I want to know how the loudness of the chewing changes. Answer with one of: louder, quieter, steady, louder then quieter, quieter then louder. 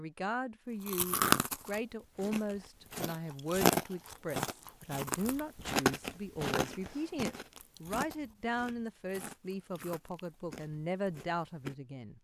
quieter.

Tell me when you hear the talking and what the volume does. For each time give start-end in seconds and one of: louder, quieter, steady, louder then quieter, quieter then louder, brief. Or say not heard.
0.0-12.1 steady.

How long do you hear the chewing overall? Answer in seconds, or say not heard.
11 s.